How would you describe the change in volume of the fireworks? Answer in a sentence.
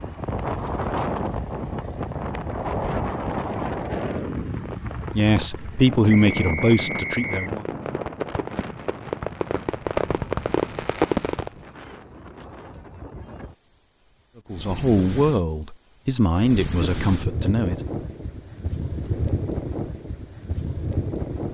The loudness of the fireworks goes up.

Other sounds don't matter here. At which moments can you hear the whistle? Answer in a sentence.
The whistle can be heard from 6.2 to 7.5 s.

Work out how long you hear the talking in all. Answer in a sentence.
The talking can be heard for 6 seconds in total.